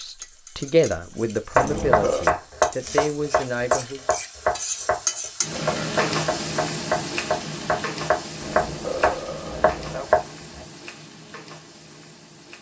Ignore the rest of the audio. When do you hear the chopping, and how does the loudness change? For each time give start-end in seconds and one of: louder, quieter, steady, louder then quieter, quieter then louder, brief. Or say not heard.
1.6-10.6 quieter then louder.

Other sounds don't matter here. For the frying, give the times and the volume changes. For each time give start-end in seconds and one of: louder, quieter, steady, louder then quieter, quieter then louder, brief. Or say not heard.
0.0-12.5 louder then quieter.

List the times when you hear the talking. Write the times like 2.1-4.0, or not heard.
0.0-4.1.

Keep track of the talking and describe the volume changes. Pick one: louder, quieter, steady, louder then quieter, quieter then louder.
quieter.